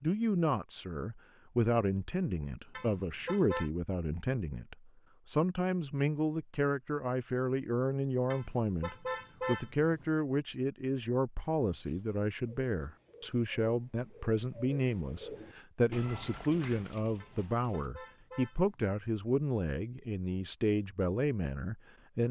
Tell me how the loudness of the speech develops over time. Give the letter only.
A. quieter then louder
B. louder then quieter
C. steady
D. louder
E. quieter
C.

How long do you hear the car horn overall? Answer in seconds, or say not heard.
4 s.